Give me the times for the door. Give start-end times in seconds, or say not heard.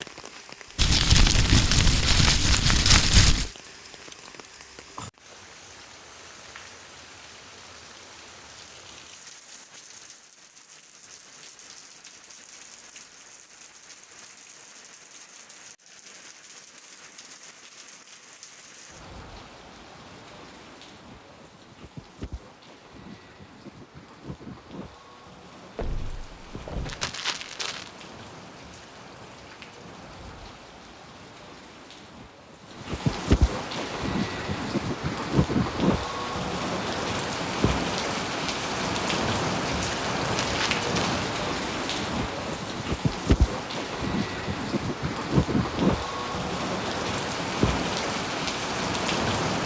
25.8-27.1.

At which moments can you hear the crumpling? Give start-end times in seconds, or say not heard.
0.8-3.5, 26.9-27.9, 40.2-41.2.